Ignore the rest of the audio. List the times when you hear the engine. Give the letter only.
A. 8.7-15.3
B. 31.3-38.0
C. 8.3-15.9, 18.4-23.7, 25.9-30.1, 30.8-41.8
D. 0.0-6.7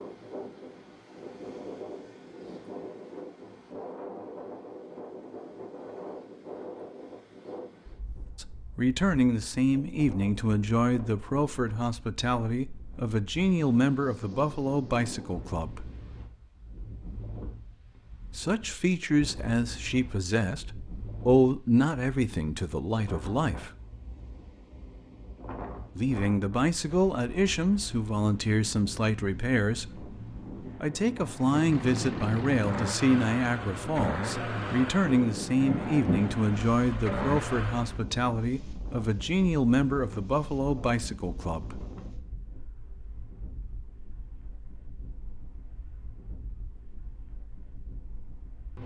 B.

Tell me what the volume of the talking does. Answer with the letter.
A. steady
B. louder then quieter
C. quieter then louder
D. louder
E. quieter
A.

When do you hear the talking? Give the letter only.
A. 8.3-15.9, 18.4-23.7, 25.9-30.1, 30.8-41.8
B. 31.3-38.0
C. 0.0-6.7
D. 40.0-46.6
A.